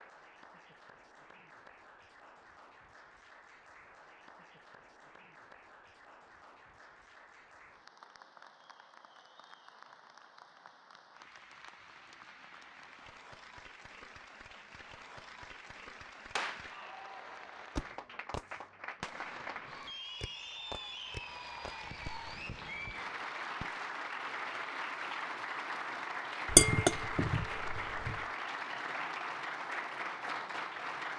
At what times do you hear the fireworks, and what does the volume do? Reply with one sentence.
You can hear the fireworks briefly from 16.4 to 16.9 s; and from 17.8 to 23.8 s, getting quieter.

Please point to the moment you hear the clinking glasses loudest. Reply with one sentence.
The volume of the clinking glasses peaks at 27 seconds.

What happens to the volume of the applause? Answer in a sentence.
The loudness of the applause goes up.